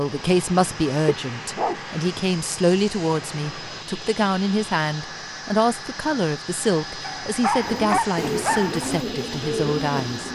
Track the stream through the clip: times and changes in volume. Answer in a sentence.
You can't hear the stream here.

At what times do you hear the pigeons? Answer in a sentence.
You can hear the pigeons from 7.6 to 10.3 s.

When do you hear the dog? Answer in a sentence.
You can hear the dog from 1.1 to 1.8 s and from 7.0 to 8.8 s.